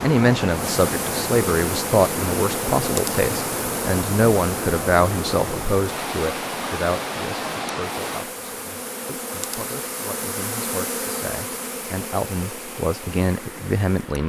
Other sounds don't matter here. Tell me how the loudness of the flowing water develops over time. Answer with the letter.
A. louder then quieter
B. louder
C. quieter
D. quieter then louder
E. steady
C.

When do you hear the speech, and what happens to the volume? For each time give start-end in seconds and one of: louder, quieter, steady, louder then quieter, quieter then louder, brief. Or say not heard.
0.0-14.2 quieter then louder.